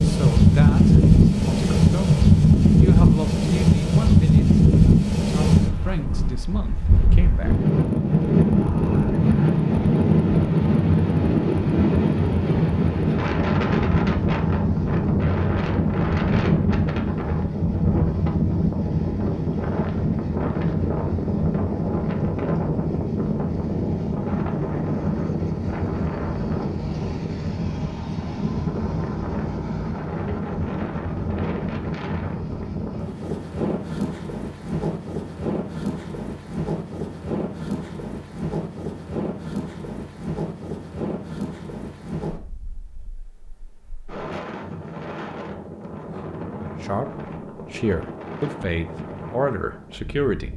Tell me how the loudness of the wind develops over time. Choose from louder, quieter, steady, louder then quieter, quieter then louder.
quieter.